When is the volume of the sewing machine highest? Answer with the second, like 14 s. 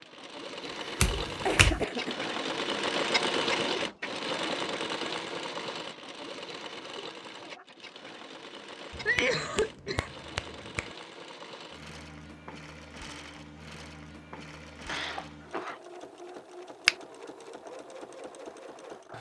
3 s.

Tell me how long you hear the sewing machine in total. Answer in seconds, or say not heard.
19 s.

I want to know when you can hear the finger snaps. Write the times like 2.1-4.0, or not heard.
1.0-1.9, 8.9-10.9.